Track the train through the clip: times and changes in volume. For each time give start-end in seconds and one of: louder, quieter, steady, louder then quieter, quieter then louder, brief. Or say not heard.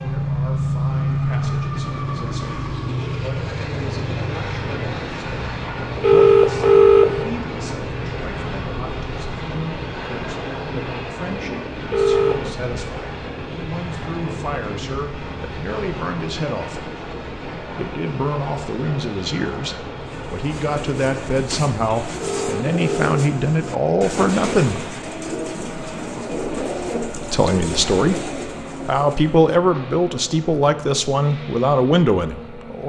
0.0-32.8 quieter.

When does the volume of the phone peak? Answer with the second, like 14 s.
7 s.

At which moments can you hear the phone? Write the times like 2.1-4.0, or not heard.
6.0-7.1, 11.9-12.4, 22.2-23.1.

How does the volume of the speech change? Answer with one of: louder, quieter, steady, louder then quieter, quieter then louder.
louder.